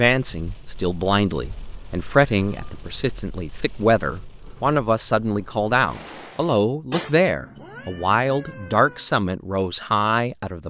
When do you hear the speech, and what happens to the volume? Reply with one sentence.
You can hear the speech from 0.0 to 10.6 s, at a steady volume.